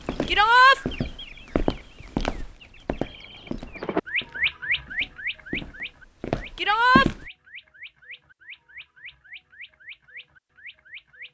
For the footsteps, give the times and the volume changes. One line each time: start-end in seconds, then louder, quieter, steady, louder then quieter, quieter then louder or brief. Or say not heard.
0.0-7.3 quieter then louder.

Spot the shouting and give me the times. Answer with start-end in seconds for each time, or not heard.
0.2-0.8, 6.5-7.1.